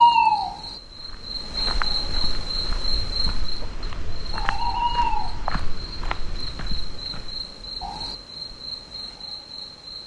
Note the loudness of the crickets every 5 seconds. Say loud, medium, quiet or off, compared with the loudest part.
loud, medium.